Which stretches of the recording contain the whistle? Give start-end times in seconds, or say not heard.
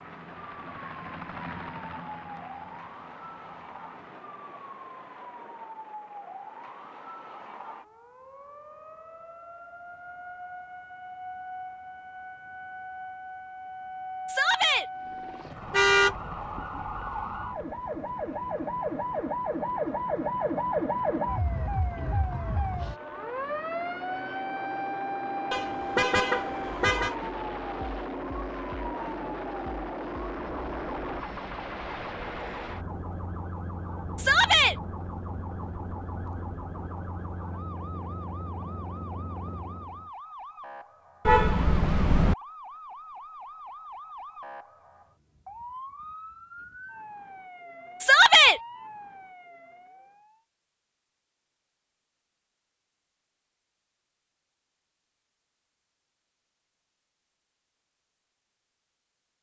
not heard.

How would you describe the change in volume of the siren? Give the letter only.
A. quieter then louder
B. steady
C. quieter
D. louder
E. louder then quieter
E.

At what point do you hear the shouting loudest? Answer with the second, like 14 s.
48 s.